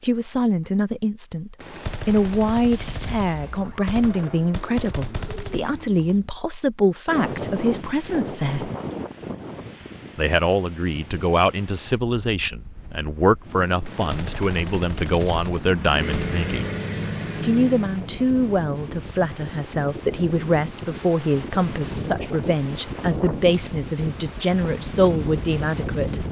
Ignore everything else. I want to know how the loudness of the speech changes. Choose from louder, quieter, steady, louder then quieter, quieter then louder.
steady.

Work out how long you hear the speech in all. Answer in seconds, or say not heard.
24 s.